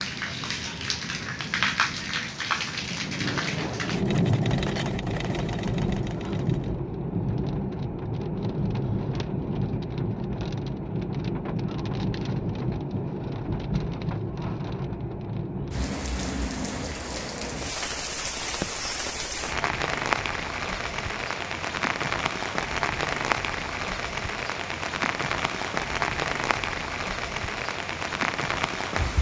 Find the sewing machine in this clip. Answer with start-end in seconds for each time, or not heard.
3.8-6.8.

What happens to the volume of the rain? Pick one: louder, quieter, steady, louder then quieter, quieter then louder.
steady.